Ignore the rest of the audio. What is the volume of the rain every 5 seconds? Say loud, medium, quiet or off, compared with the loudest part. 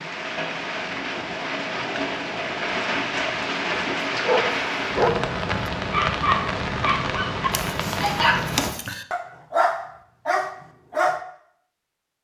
loud, loud, off.